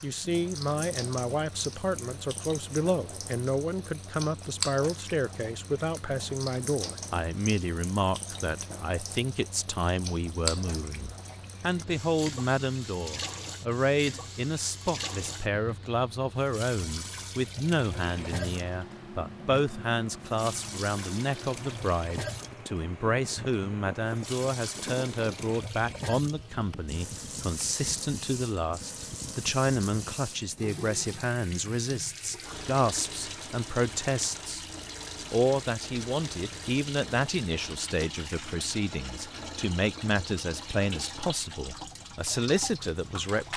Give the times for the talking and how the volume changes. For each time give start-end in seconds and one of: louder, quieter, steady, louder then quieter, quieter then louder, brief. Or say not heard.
0.0-34.6 steady
35.3-43.5 steady.